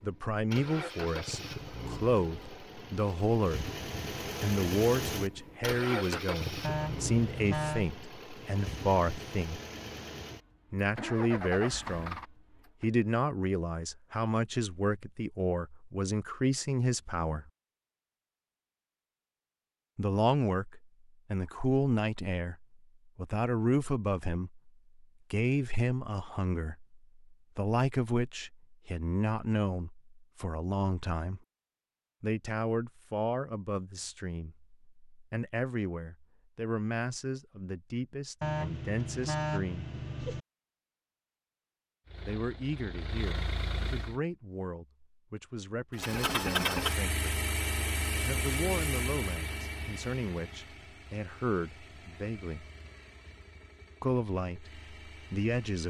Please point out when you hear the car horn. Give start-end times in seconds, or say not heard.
6.6-7.9, 38.4-40.4.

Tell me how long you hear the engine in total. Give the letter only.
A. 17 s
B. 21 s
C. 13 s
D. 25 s
D.